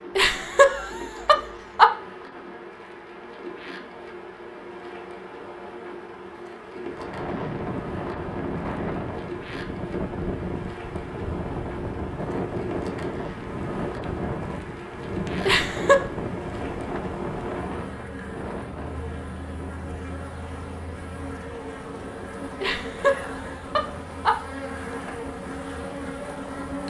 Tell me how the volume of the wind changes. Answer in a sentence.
The loudness of the wind goes down.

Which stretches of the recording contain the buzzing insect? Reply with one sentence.
You can hear the buzzing insect from 0.0 to 26.8 s.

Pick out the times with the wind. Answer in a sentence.
You can hear the wind from 6.8 to 26.8 s.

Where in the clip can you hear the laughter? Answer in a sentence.
The laughter can be heard from 0.1 to 1.9 s, from 15.4 to 16.0 s and from 22.6 to 24.4 s.